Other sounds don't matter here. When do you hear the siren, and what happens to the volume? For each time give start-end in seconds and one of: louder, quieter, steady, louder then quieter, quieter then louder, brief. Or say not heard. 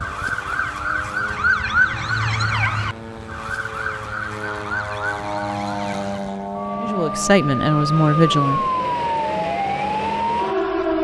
0.0-10.9 quieter then louder.